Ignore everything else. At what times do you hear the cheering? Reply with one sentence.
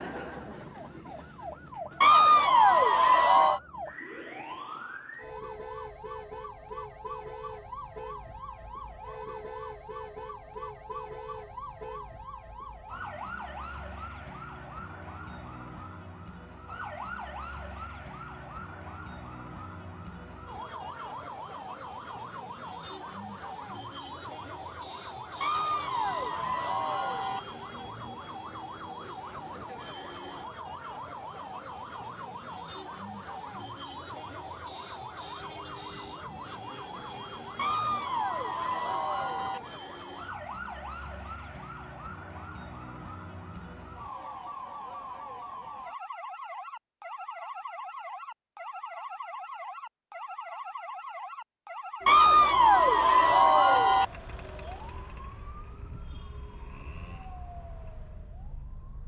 You can hear the cheering from 2.0 to 3.6 s, from 25.4 to 27.4 s, from 37.5 to 39.6 s and from 52.0 to 54.0 s.